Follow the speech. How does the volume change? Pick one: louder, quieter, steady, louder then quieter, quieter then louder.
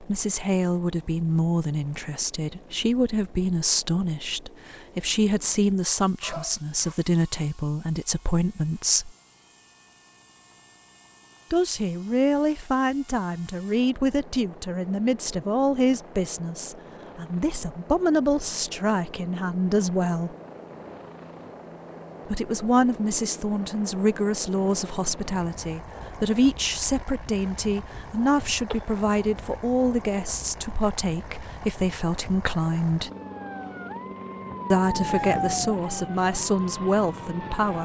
steady.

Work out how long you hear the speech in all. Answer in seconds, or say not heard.
32 s.